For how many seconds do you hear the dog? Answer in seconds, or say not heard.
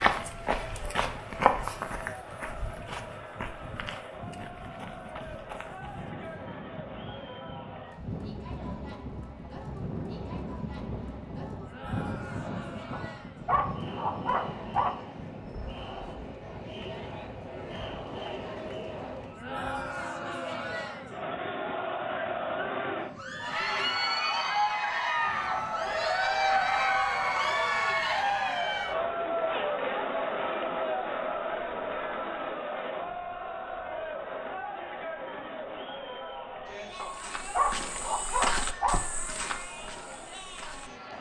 4 s.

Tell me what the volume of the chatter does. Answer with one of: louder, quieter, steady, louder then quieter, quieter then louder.
louder then quieter.